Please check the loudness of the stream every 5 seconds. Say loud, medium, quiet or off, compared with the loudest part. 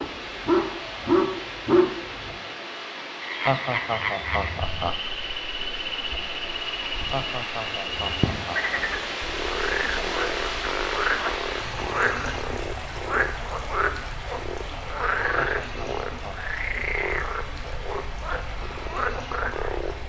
loud, loud, loud, medium.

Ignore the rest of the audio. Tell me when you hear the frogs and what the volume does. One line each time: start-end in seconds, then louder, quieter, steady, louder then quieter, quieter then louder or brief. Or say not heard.
3.2-20.0 steady.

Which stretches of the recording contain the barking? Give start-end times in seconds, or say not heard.
0.0-2.3.